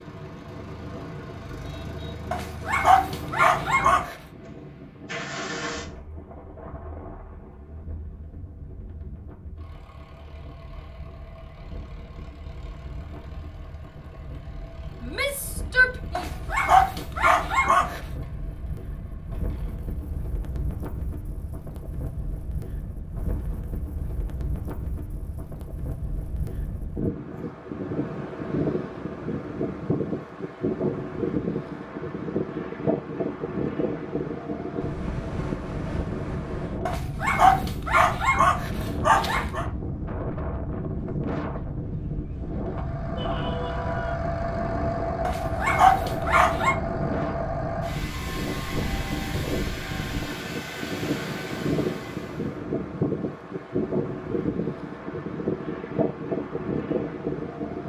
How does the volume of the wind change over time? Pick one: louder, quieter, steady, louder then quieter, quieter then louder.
louder.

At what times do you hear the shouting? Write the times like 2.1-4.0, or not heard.
15.0-16.3, 43.1-44.1.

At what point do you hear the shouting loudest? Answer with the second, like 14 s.
16 s.